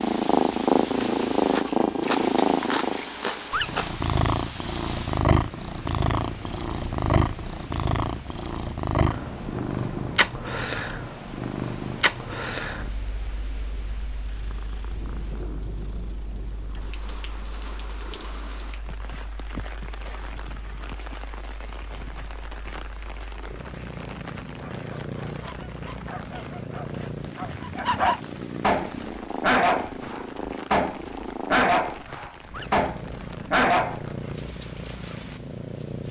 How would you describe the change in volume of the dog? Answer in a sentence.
The loudness of the dog goes up.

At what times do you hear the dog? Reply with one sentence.
You can hear the dog from 24.4 to 34.1 s.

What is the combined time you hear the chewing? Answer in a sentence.
The chewing can be heard for 3 seconds in total.